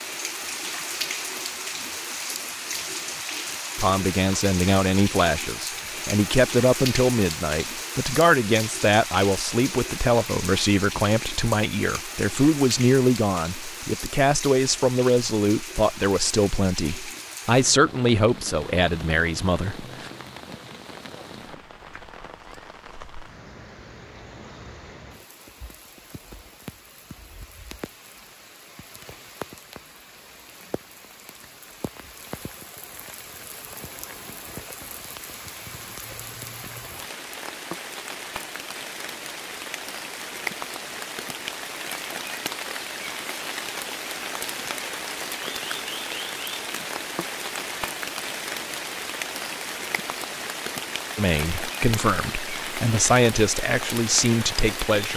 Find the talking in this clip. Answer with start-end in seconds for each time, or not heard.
3.8-20.1, 51.1-55.1.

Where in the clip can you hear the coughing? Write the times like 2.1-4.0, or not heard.
not heard.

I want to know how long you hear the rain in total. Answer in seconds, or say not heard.
55 s.